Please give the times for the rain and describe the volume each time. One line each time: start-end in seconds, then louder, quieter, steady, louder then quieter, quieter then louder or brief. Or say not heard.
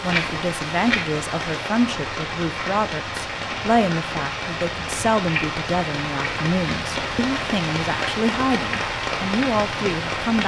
0.0-10.4 steady.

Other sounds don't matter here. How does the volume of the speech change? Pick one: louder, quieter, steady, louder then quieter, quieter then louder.
steady.